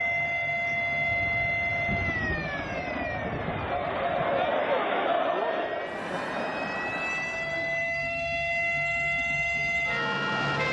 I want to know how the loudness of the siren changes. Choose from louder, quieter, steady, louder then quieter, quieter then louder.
quieter then louder.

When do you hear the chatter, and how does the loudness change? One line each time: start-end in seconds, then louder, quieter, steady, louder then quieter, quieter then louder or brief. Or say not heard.
0.0-8.1 louder then quieter.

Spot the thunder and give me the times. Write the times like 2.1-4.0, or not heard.
1.1-4.5.